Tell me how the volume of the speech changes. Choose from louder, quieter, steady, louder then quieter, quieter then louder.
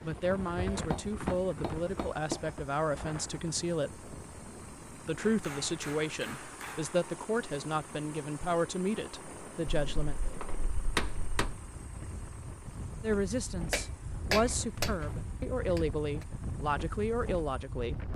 steady.